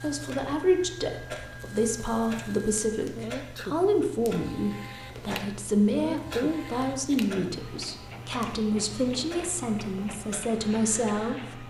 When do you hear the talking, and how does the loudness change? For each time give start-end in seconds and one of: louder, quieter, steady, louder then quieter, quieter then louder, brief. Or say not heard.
0.0-11.6 steady.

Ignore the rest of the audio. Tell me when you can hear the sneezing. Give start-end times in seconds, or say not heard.
3.1-4.0, 5.9-6.7.